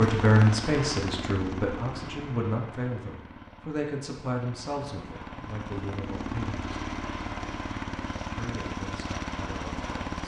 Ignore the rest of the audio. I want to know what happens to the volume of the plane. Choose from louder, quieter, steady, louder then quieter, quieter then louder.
quieter then louder.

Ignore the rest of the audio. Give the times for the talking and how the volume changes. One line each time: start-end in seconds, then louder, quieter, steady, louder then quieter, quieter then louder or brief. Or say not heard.
0.0-6.8 quieter
8.3-10.0 brief.